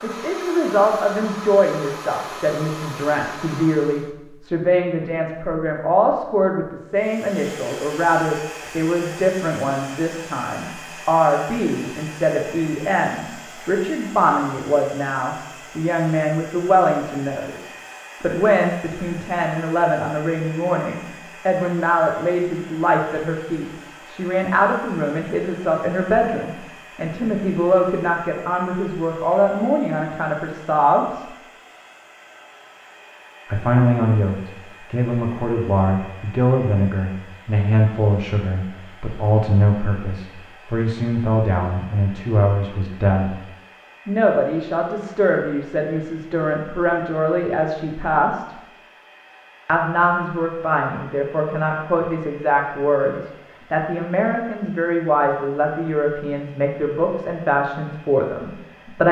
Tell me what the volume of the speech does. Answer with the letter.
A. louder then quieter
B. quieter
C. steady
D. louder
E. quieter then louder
C.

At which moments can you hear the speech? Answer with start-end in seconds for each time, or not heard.
0.0-31.2, 33.5-43.4, 44.0-48.5, 49.6-59.0.